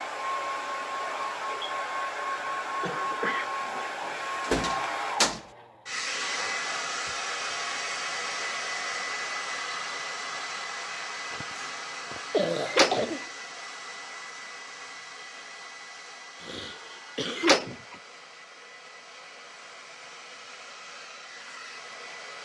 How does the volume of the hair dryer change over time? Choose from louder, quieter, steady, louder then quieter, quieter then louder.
quieter.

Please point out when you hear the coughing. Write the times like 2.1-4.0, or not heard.
2.8-3.9, 11.3-13.2, 16.4-18.0.